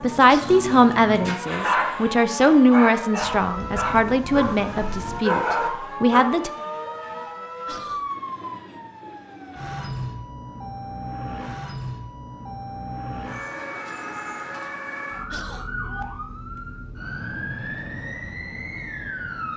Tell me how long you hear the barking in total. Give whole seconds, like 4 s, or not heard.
6 s.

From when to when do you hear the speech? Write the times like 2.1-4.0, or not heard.
0.0-6.5.